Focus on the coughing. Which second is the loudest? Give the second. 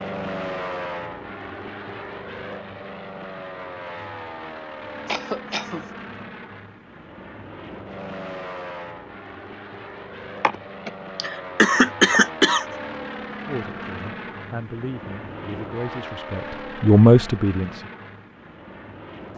12 s.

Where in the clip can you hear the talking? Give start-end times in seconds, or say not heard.
13.4-17.9.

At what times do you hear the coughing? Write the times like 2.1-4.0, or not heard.
5.0-5.8, 10.4-12.7.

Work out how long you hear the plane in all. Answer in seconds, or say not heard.
19 s.